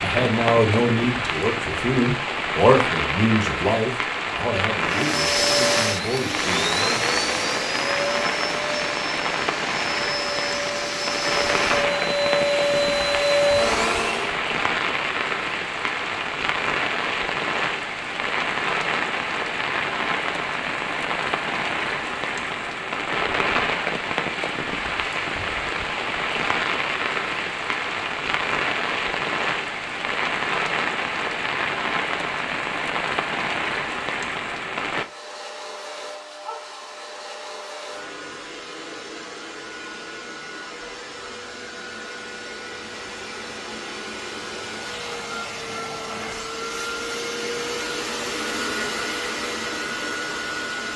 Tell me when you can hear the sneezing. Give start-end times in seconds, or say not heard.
not heard.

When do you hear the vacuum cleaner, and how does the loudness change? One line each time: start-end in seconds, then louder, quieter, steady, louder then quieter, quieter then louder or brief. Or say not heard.
4.8-14.4 quieter then louder
34.9-50.9 louder.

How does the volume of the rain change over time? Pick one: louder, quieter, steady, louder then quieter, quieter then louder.
steady.